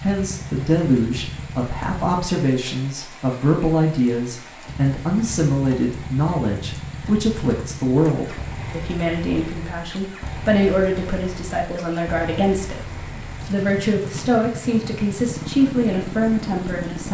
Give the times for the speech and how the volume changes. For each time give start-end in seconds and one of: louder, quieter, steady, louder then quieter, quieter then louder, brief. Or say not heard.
0.0-17.1 steady.